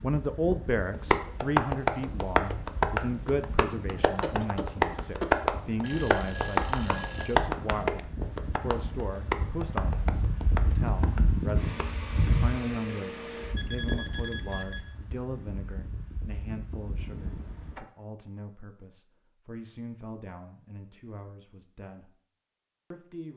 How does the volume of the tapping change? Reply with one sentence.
The loudness of the tapping goes down.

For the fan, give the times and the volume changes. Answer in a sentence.
The fan can be heard from 0.0 to 17.8 s, getting louder then quieter.